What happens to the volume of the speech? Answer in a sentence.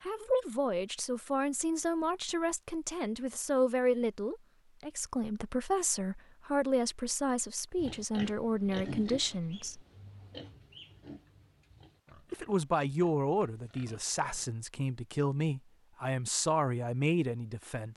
The volume of the speech stays about the same.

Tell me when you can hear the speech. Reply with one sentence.
You can hear the speech from 0.0 to 9.8 s and from 12.3 to 17.9 s.